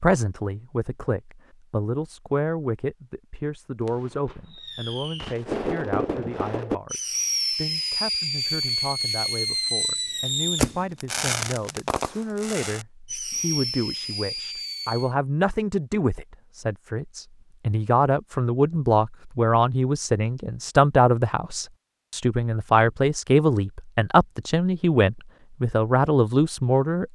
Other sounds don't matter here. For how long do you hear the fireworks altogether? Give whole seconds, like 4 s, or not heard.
11 s.